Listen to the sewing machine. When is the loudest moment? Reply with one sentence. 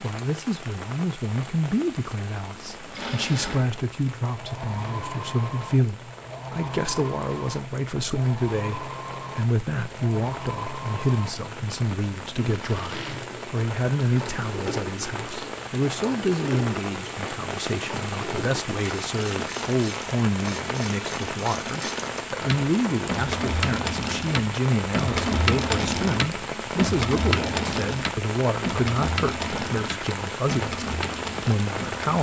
The loudest moment of the sewing machine is at 25 seconds.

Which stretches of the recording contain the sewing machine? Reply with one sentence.
The sewing machine can be heard from 2.5 to 32.1 s.